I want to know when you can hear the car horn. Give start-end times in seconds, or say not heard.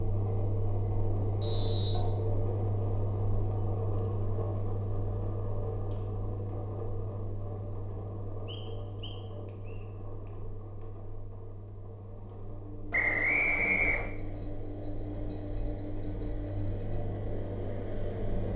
not heard.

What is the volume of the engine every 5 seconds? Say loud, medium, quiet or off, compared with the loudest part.
loud, medium, medium, loud.